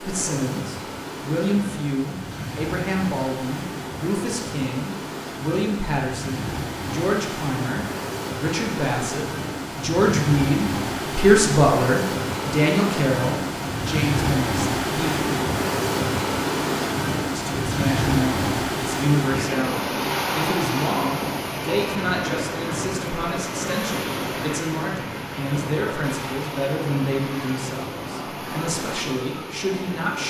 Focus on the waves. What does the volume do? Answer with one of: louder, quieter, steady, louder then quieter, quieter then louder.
louder then quieter.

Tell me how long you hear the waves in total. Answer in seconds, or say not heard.
30 s.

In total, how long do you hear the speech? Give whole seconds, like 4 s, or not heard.
28 s.